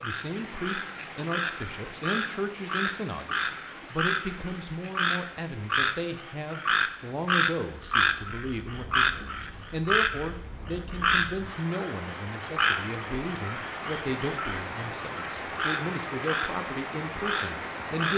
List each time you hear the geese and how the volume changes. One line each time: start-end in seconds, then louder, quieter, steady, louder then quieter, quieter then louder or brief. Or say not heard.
not heard.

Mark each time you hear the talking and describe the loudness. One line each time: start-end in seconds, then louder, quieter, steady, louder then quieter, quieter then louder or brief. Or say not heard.
0.0-18.1 steady.